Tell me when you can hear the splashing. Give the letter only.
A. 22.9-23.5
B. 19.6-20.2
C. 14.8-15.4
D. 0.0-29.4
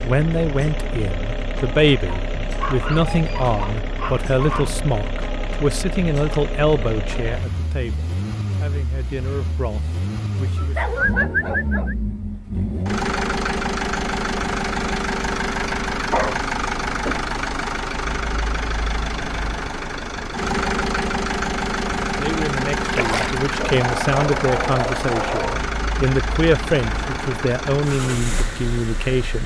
A.